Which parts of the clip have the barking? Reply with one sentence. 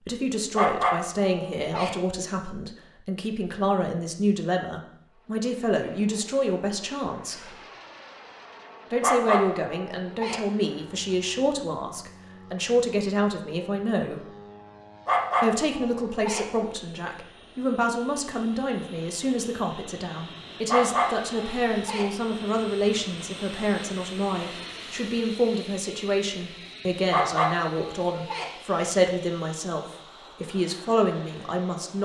The barking can be heard from 0.6 to 1.9 s, from 9.0 to 10.4 s, from 15.1 to 16.4 s, from 20.6 to 22.1 s and from 27.1 to 28.4 s.